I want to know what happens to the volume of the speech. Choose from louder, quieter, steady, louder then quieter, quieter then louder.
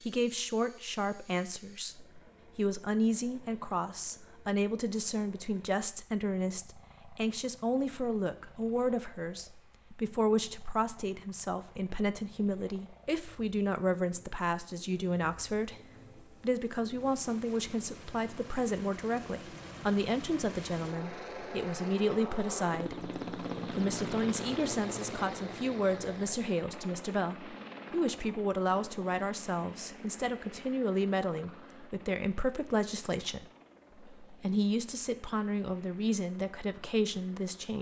steady.